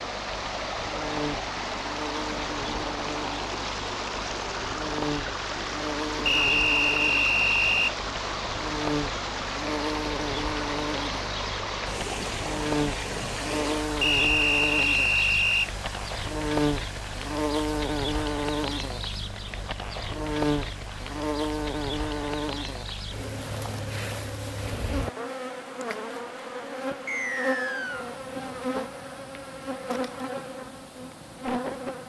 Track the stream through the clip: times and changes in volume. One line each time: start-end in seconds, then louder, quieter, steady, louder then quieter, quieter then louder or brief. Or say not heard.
0.0-32.0 quieter.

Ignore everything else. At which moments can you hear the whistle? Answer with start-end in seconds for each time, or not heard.
6.2-8.0, 14.0-15.7, 27.1-28.1.